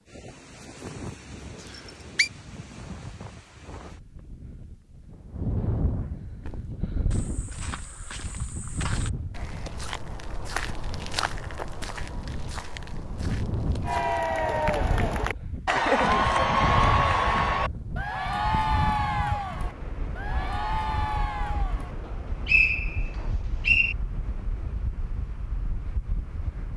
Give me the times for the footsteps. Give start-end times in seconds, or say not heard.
6.4-14.2.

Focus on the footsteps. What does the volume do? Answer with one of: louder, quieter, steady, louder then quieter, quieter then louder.
louder then quieter.